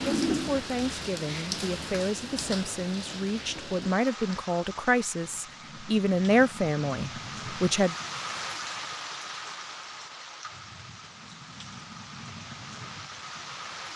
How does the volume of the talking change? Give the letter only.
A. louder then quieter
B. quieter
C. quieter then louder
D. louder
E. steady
D.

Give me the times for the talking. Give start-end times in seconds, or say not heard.
0.0-8.0.